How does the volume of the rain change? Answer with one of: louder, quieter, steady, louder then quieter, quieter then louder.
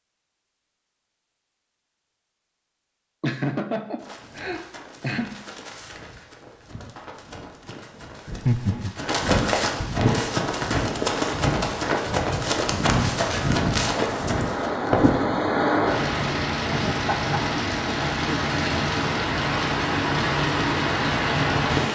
louder.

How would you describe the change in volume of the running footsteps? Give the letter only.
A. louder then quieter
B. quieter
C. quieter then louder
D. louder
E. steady
D.